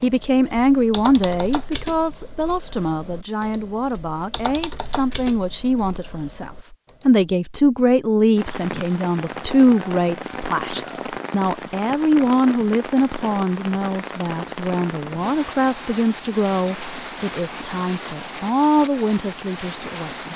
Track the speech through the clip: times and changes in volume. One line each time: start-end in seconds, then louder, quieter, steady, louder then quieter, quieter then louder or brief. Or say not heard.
0.0-20.3 steady.